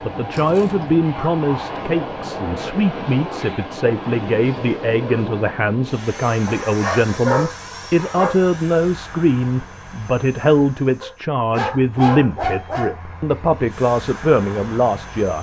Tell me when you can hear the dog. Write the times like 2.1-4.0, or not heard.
0.3-1.4, 6.5-8.3, 11.0-13.3.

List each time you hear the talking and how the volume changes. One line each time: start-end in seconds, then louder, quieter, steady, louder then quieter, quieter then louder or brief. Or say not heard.
0.0-15.3 steady.